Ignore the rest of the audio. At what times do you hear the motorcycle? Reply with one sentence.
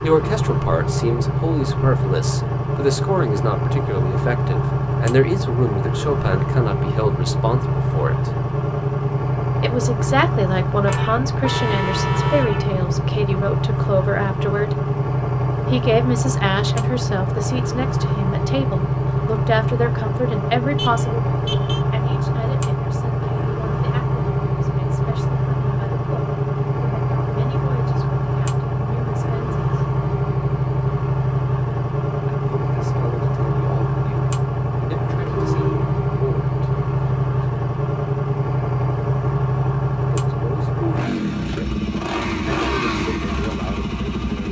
The motorcycle can be heard from 0.0 to 44.4 s.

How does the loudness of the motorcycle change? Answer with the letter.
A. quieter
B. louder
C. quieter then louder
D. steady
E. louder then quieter
D.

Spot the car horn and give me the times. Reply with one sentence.
The car horn can be heard from 10.8 to 12.8 s, from 20.8 to 21.9 s and from 35.2 to 35.9 s.